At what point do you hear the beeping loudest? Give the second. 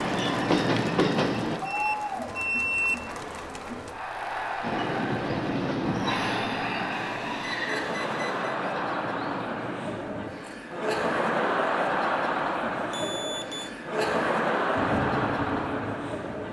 3 s.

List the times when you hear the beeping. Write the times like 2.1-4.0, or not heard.
1.6-3.0, 6.9-8.6, 12.9-13.7.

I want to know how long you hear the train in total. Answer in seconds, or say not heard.
9 s.